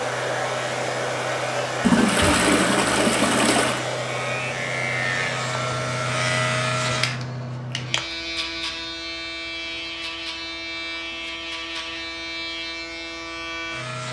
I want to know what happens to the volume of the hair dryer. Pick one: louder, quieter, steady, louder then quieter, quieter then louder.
quieter.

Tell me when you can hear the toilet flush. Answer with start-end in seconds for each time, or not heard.
1.8-3.9.